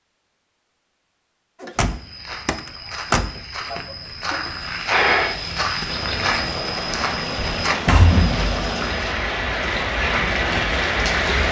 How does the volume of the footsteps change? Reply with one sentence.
The loudness of the footsteps goes up.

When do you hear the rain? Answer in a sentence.
You can hear the rain from 4.6 to 11.4 s.